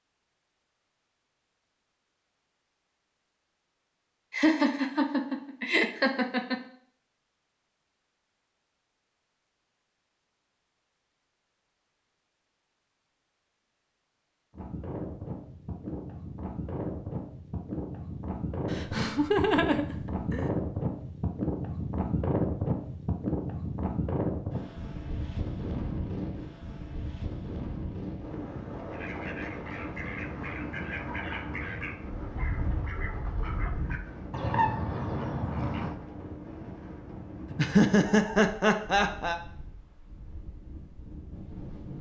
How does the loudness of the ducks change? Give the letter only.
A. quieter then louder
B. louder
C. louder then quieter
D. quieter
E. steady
B.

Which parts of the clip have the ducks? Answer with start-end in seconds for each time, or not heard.
28.9-36.0.